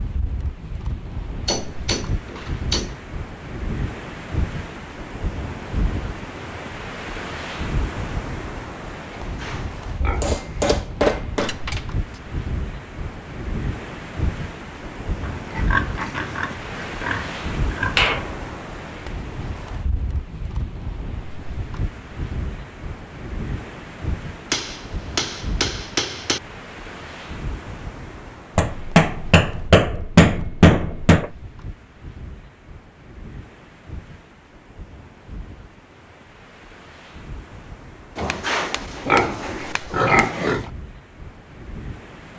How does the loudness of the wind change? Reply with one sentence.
The volume of the wind goes down.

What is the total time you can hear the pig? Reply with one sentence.
You can hear the pig for 7 seconds altogether.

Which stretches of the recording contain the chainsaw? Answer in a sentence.
You can't hear the chainsaw here.